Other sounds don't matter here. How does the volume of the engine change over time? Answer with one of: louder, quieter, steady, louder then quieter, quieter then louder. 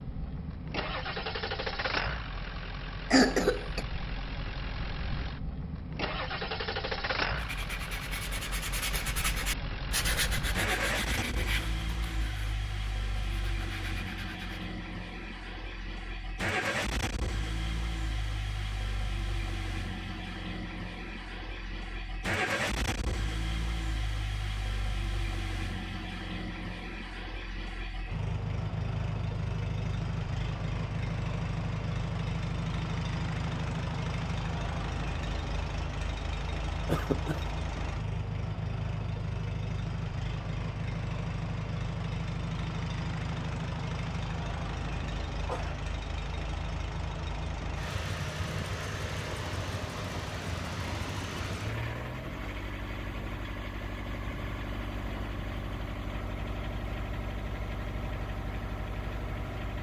steady.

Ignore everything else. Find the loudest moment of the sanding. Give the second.
10 s.